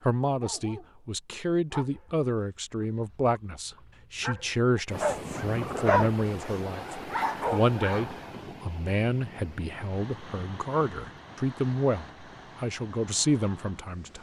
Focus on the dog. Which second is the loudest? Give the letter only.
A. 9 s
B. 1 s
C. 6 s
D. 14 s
C.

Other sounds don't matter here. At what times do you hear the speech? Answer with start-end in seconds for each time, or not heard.
0.1-14.1.